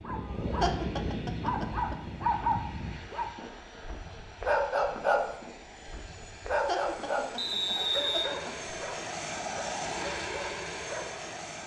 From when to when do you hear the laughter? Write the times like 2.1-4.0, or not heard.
0.6-1.9, 6.7-8.6.